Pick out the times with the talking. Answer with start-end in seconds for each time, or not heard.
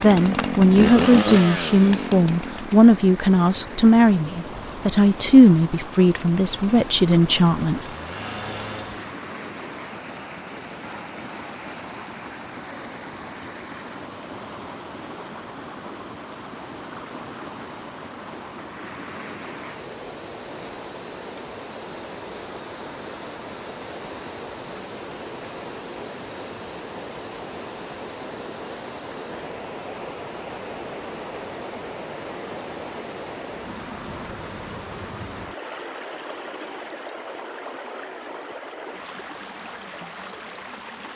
0.0-7.8.